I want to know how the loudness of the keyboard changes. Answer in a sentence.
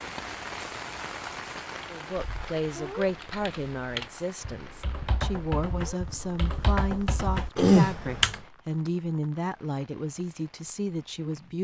The volume of the keyboard goes up.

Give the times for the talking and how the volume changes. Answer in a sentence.
You can hear the talking from 1.9 to 11.5 s, at a steady volume.